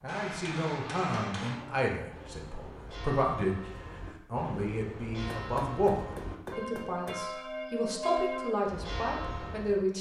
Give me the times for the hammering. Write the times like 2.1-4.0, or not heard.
0.1-1.6, 5.2-7.2.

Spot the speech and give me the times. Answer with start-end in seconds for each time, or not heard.
0.0-3.7, 4.3-9.9.